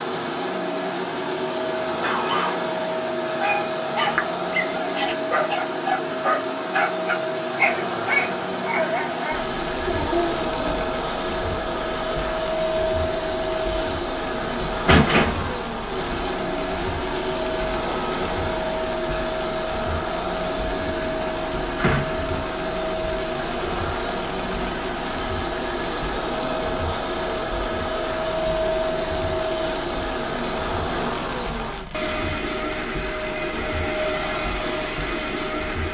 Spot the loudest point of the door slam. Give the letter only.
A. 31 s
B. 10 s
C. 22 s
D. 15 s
D.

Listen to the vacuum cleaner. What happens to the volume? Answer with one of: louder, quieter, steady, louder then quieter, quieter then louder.
steady.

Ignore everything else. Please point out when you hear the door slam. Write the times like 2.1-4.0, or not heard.
14.8-15.5, 21.0-22.2.